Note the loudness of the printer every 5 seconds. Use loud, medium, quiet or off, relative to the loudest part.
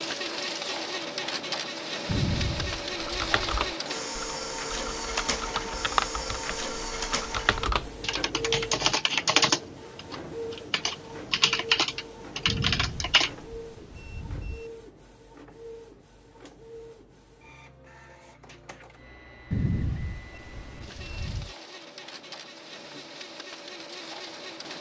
loud, loud, medium, quiet, medium.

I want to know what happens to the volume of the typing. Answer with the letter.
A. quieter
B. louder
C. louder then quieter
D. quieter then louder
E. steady
B.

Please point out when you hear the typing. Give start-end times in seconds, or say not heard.
3.0-13.3.